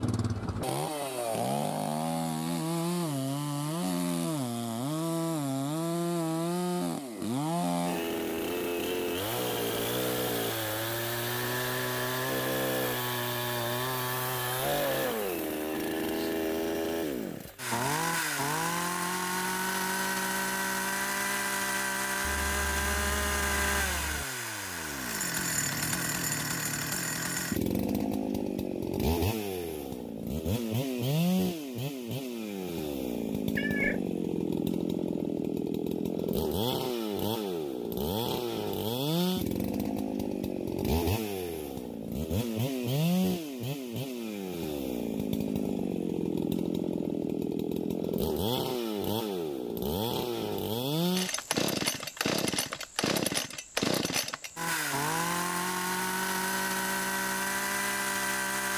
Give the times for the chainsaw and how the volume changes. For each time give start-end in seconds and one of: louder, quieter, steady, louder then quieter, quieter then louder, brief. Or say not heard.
0.0-58.7 steady.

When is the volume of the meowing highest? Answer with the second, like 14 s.
34 s.